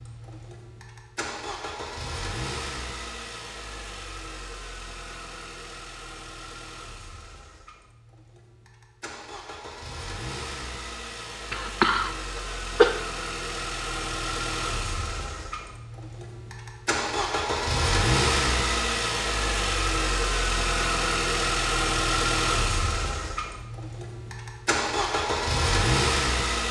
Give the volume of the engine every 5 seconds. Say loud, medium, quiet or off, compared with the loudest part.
quiet, quiet, medium, loud, loud, loud.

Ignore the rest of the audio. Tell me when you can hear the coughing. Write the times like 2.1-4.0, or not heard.
11.5-12.9.